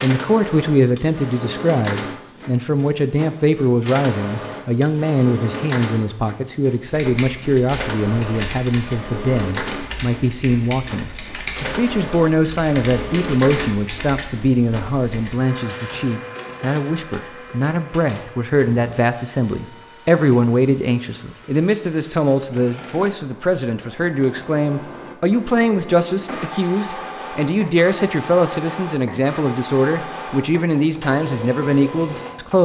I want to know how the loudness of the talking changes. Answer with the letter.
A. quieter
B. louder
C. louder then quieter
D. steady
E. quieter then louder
D.